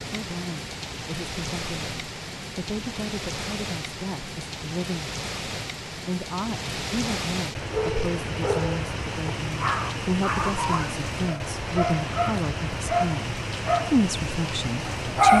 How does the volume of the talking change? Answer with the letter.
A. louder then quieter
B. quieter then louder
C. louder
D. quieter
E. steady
C.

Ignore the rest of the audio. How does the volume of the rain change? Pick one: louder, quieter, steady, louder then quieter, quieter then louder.
steady.